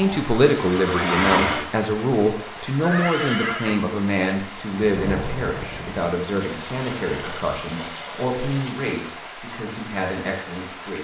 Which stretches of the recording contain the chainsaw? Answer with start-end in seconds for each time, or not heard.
0.0-1.6.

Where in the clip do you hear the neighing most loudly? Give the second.
3 s.